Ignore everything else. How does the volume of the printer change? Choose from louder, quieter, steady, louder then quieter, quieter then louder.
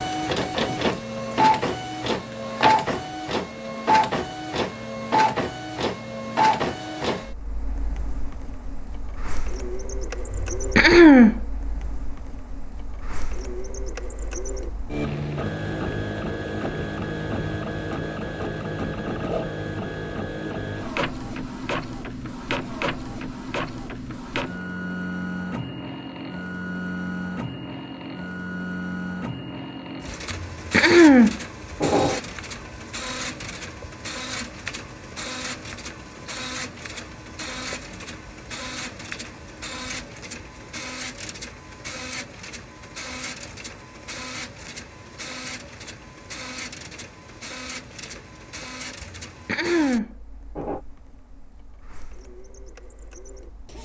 quieter.